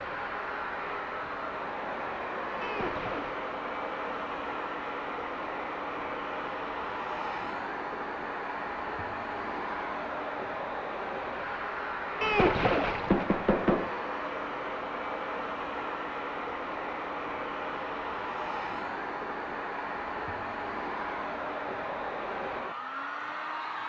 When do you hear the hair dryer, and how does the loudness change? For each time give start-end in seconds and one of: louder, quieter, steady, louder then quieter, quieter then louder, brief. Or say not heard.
0.0-23.8 steady.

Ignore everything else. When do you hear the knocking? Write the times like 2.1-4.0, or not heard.
2.6-3.4, 12.2-13.9.